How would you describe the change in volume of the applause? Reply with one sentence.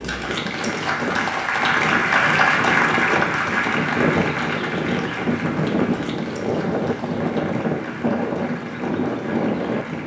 The loudness of the applause goes down.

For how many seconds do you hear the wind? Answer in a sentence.
The wind can be heard for 10 seconds in total.